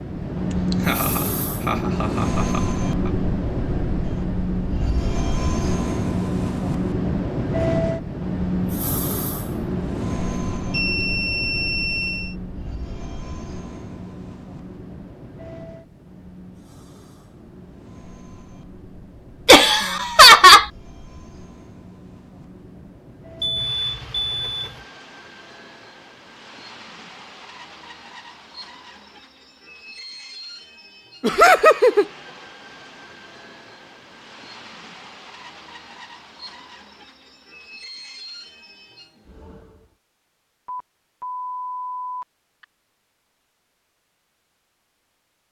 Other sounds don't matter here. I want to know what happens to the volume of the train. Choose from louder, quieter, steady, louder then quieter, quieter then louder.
quieter.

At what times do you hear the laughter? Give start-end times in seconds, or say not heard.
0.7-3.1, 19.4-20.6, 31.2-32.0.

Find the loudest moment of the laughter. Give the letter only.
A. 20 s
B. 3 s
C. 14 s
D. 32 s
A.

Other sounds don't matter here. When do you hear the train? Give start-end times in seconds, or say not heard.
0.0-40.0.